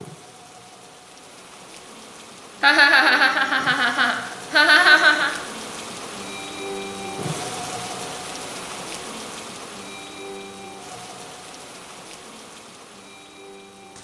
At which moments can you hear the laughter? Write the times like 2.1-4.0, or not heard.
2.6-5.3.